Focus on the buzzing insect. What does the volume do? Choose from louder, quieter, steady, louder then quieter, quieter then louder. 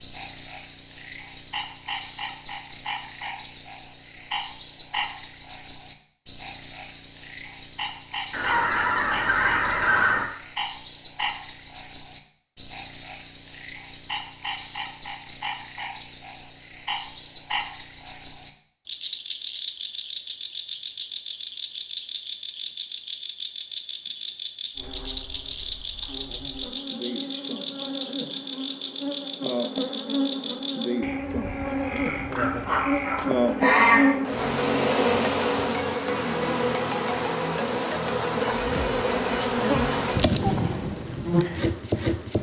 louder.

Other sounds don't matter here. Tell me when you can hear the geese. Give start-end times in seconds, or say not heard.
8.3-10.3, 32.0-34.0.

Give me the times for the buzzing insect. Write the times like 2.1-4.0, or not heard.
24.8-42.3.